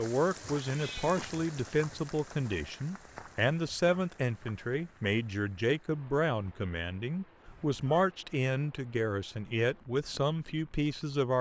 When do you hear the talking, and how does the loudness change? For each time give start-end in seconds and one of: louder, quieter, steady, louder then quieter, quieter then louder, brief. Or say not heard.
0.0-11.3 steady.